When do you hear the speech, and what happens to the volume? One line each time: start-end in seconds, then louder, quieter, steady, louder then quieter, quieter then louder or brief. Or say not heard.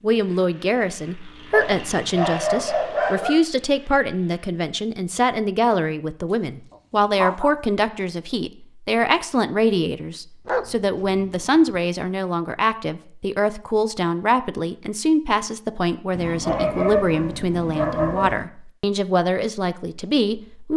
0.0-20.7 steady.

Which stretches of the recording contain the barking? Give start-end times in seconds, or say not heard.
1.5-3.5, 6.7-7.5, 10.4-11.8, 16.1-18.5.